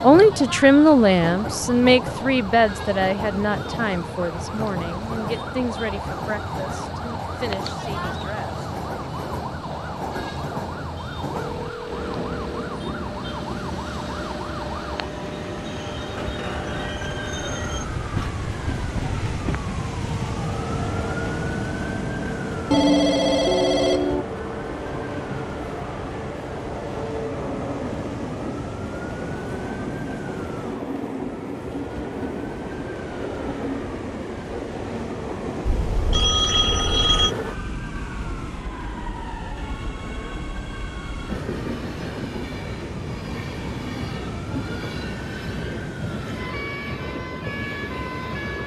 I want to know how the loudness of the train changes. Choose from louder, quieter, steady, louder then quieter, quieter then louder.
steady.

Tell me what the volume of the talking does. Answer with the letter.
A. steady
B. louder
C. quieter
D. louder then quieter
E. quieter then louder
C.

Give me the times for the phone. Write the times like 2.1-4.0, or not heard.
11.3-12.8, 22.7-24.2, 35.6-37.4.